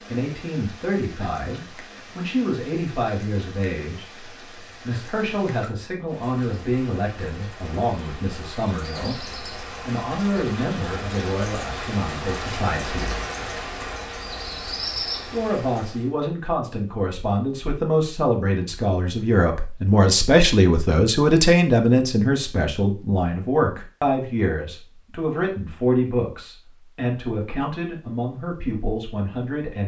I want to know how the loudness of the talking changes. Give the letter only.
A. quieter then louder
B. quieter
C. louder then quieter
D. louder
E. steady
C.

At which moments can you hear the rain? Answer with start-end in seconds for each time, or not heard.
0.0-16.1.